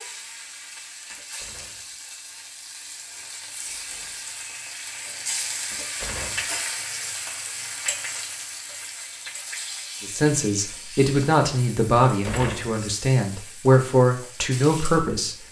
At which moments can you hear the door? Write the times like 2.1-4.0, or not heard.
1.1-1.9, 5.7-6.6, 12.1-12.8.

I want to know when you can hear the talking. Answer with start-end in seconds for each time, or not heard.
10.0-15.4.